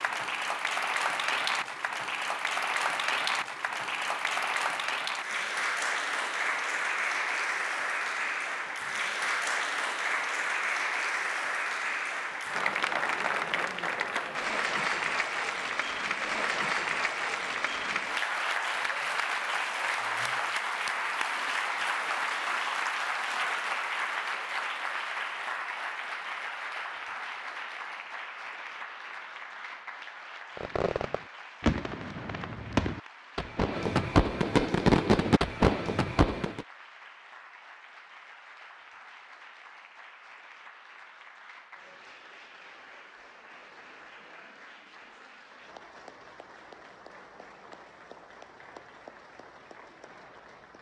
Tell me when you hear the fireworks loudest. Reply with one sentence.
The loudest moment of the fireworks is at 35 seconds.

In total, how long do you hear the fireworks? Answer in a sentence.
The fireworks can be heard for 6 seconds in total.